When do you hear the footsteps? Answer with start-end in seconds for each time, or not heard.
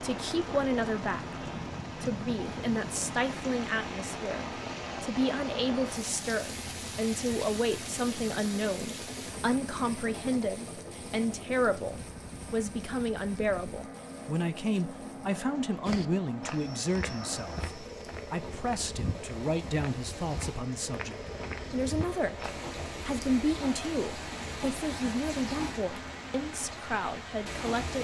15.8-22.5.